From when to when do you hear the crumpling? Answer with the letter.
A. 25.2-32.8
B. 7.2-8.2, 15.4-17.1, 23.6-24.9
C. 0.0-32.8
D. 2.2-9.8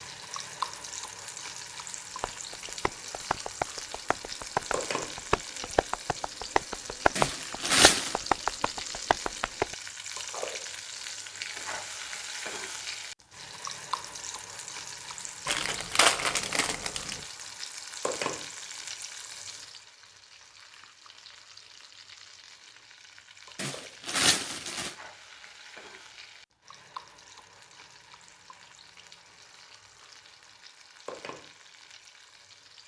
B.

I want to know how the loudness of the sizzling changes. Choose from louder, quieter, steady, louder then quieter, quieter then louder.
quieter.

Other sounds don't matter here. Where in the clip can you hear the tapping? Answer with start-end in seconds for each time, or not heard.
2.2-9.8.